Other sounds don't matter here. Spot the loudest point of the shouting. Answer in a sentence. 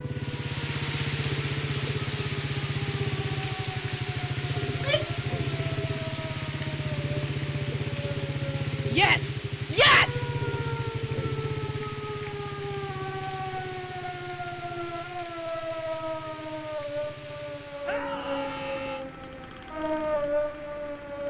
The loudest moment of the shouting is at 10 seconds.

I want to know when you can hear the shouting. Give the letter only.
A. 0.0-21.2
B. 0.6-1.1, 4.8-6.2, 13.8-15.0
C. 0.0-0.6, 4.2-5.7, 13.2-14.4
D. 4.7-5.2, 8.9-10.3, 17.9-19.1
D.